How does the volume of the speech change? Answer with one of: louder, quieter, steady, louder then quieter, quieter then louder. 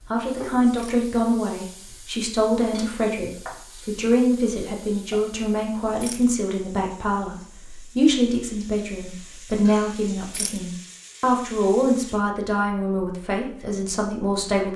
steady.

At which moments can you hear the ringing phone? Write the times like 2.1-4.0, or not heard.
not heard.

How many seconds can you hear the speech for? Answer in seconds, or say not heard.
15 s.